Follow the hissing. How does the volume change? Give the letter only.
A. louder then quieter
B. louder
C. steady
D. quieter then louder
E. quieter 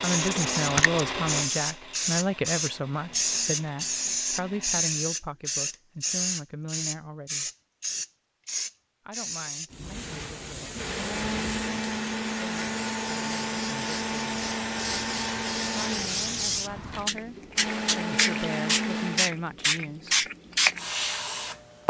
D.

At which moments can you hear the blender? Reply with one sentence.
You can hear the blender from 0.0 to 4.8 s and from 9.9 to 19.3 s.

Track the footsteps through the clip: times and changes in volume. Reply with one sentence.
You can't hear the footsteps here.